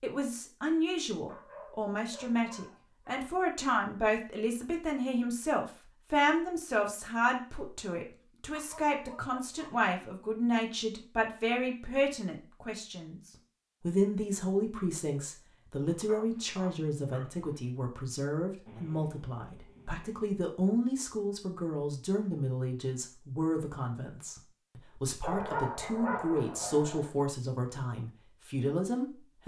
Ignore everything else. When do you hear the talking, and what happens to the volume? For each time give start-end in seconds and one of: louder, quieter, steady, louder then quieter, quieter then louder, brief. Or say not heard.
0.0-29.4 steady.